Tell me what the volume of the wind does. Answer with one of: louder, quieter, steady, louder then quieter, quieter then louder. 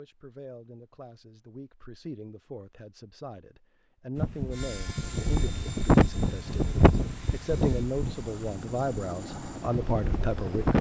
louder then quieter.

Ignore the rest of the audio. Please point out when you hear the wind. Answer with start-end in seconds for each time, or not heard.
4.2-10.7.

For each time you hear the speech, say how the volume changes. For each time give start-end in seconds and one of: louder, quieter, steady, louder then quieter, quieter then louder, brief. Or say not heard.
0.0-10.7 louder.